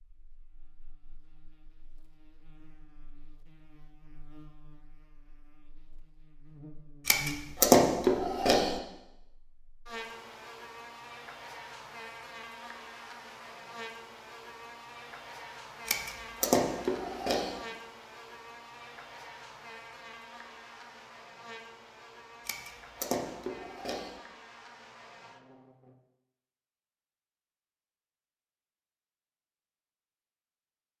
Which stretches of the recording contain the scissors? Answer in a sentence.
The scissors can be heard from 7.0 to 8.8 s, from 15.8 to 17.6 s and from 22.4 to 24.1 s.